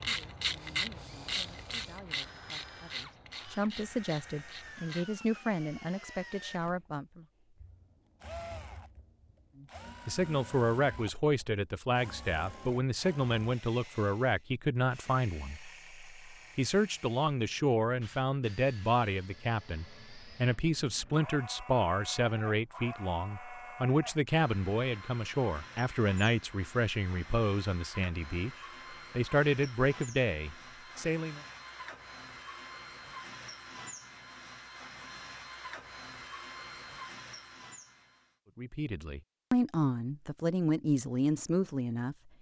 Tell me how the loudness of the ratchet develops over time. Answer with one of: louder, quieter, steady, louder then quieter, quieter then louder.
quieter.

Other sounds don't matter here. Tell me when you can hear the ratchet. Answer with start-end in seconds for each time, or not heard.
0.0-5.1.